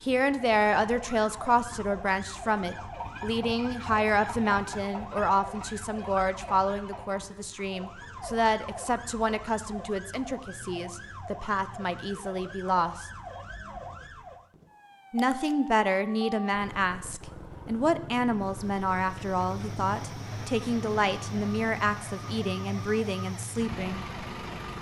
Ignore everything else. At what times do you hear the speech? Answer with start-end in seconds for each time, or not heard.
0.0-13.1, 15.1-24.1.